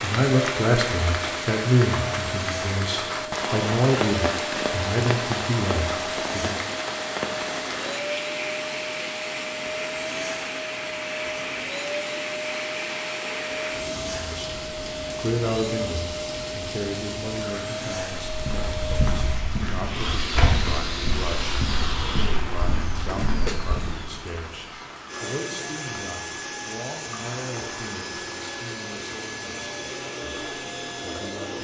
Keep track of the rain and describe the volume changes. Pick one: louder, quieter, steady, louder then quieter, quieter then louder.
quieter.